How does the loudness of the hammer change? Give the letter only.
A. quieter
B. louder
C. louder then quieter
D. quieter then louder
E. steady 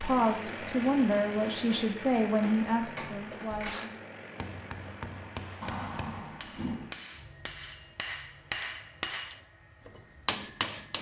B.